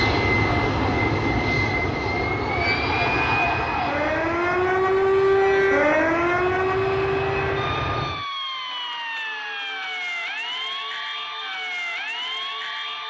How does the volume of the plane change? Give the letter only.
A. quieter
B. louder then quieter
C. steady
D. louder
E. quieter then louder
E.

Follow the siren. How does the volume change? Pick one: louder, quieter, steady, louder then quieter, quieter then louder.
louder then quieter.